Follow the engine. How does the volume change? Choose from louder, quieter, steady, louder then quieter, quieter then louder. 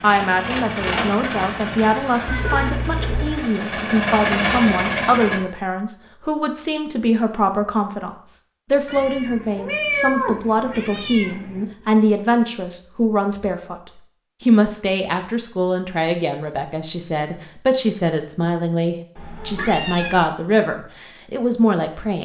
quieter then louder.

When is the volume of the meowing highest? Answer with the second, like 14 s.
10 s.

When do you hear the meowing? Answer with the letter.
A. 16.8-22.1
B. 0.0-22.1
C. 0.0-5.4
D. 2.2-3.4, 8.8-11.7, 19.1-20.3
D.